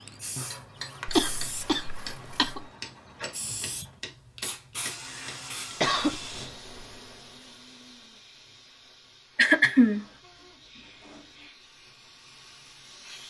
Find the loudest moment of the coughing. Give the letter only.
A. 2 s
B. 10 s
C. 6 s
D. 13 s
B.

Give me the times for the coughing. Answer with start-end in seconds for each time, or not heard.
1.1-2.7, 5.0-6.1, 9.3-10.1.